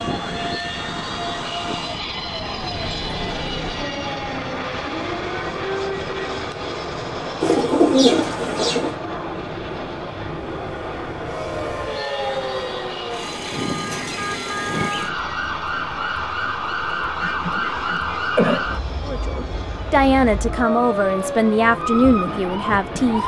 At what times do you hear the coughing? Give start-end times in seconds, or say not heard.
17.2-18.7.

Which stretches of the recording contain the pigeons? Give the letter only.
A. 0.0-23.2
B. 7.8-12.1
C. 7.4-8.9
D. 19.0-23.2
C.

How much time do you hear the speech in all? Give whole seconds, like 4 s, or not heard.
4 s.